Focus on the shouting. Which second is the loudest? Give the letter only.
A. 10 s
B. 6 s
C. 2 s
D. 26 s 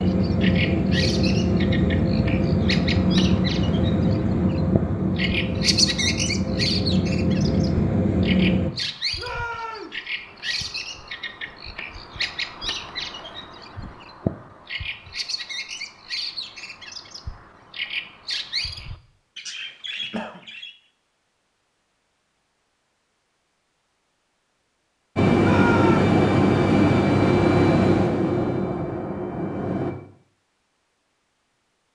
D.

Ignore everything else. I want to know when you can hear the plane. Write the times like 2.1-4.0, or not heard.
0.0-8.7, 25.1-29.9.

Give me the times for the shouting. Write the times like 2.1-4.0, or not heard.
9.2-10.0, 25.4-26.1.